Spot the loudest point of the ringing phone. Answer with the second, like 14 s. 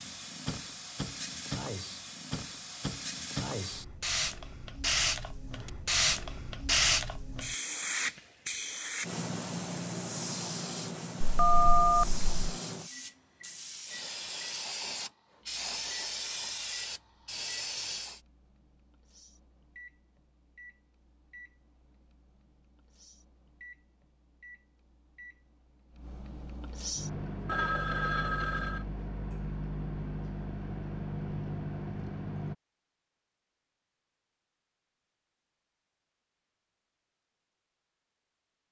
12 s.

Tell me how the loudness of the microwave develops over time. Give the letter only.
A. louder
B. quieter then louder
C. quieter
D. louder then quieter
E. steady
A.